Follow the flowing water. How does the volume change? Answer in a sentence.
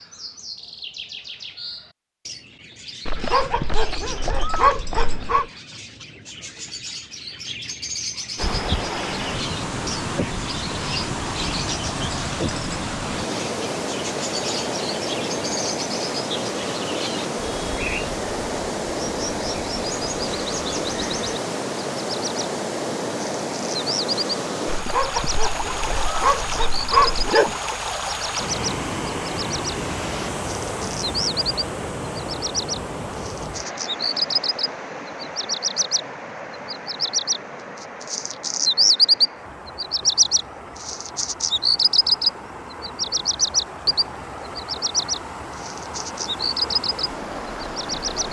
The loudness of the flowing water goes down.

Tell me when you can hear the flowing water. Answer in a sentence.
You can hear the flowing water from 8.3 to 48.2 s.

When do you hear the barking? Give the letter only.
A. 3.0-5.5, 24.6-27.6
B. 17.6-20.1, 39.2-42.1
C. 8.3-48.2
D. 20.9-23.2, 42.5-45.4
A.